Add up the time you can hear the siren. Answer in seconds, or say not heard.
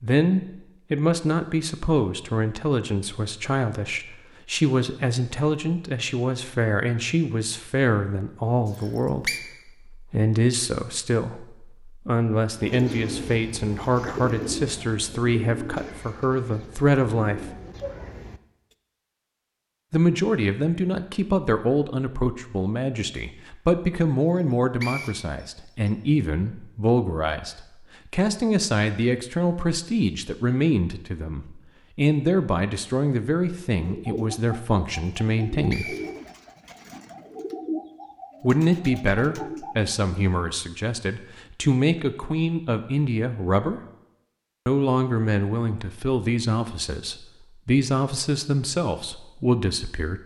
not heard.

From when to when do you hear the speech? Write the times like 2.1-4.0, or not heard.
0.0-17.6, 19.9-36.0, 38.4-43.8, 44.6-50.2.